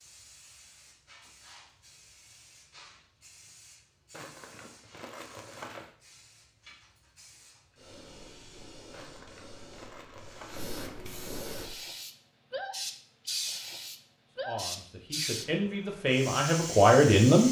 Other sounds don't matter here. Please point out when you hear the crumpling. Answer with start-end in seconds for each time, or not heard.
4.1-6.0, 8.9-10.9.